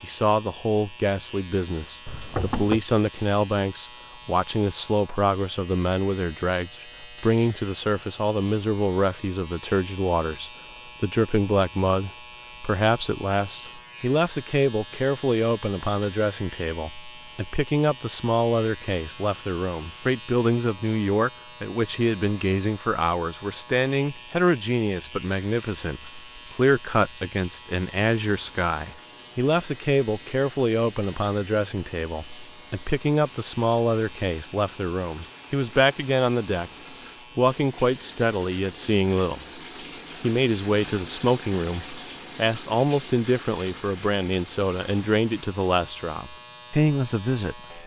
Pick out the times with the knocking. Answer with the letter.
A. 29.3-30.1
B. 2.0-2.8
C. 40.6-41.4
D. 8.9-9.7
B.